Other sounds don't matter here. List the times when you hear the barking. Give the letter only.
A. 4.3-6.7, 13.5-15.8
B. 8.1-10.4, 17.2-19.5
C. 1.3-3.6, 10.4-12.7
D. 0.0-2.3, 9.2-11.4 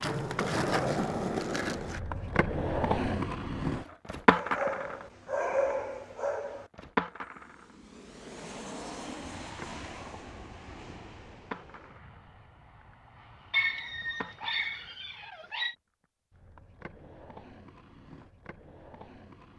A.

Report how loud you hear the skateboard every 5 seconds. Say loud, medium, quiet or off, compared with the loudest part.
loud, medium, quiet, quiet.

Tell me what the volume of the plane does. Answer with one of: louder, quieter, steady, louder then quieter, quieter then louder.
quieter.